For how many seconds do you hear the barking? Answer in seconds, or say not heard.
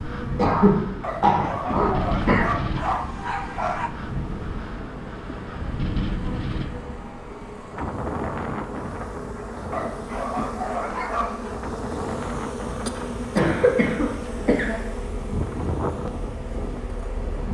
5 s.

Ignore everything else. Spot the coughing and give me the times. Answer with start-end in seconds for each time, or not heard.
0.3-2.5, 12.9-14.8.